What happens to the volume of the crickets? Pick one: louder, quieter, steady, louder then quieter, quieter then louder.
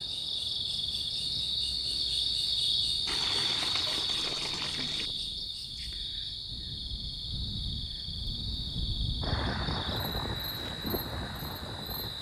quieter.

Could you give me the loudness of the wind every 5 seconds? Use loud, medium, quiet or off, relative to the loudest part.
quiet, loud, loud.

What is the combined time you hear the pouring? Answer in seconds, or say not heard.
2 s.